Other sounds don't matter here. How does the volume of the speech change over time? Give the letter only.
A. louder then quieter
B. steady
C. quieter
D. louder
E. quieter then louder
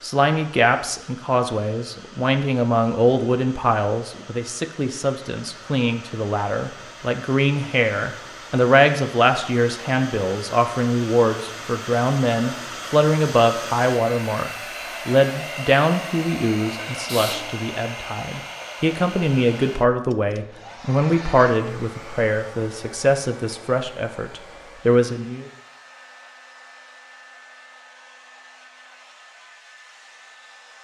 B.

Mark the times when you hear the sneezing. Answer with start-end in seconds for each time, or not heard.
16.9-17.4.